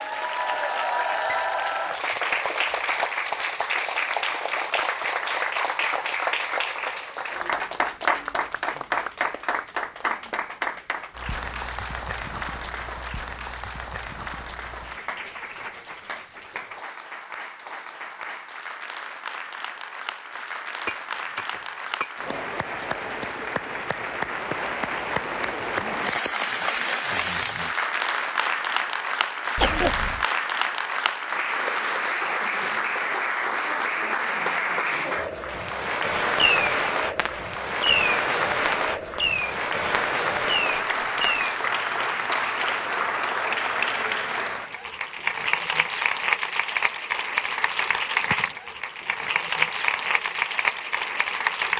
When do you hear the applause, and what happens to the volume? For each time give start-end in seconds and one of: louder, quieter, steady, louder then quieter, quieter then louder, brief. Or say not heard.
0.0-51.7 quieter then louder.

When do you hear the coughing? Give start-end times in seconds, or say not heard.
29.6-30.2.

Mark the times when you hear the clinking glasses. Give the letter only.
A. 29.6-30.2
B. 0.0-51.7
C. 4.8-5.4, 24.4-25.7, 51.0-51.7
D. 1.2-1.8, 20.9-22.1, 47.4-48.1
D.